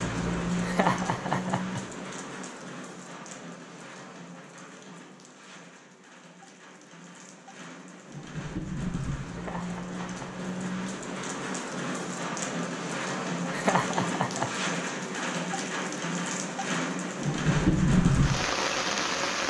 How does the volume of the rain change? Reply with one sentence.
The loudness of the rain goes down, then up.